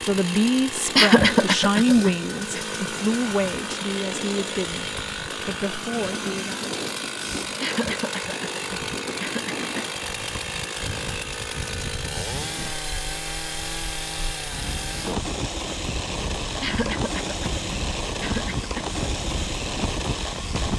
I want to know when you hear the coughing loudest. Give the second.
1 s.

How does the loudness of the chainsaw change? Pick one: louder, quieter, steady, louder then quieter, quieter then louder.
steady.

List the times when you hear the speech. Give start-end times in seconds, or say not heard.
0.0-6.7.